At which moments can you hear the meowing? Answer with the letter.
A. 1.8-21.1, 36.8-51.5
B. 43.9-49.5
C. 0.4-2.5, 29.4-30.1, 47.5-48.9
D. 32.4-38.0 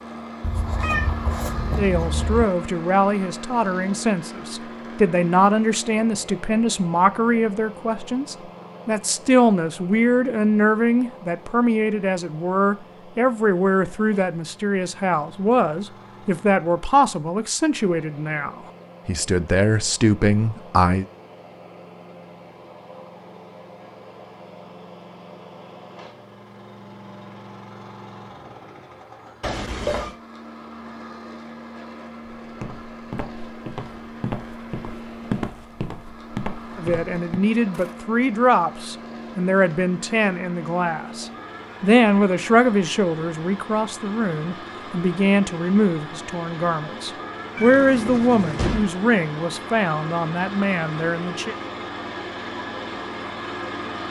C.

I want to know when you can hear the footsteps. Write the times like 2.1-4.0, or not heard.
32.4-38.0.